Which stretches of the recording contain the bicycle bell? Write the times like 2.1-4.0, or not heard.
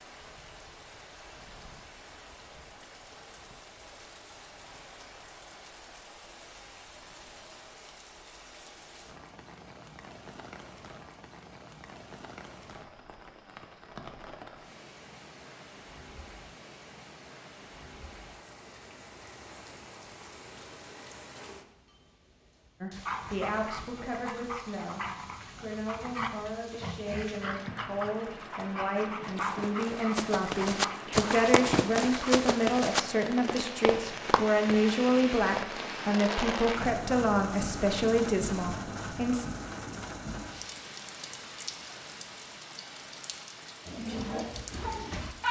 not heard.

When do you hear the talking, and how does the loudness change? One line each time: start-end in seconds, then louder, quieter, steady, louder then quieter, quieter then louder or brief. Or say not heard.
22.8-39.5 louder.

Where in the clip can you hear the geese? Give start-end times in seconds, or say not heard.
not heard.